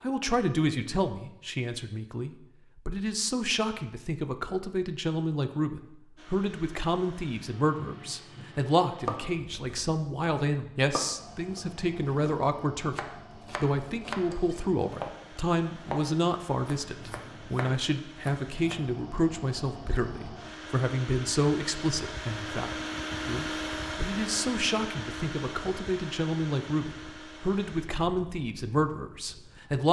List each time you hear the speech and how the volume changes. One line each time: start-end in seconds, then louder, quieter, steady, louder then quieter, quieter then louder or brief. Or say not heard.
0.0-29.8 steady.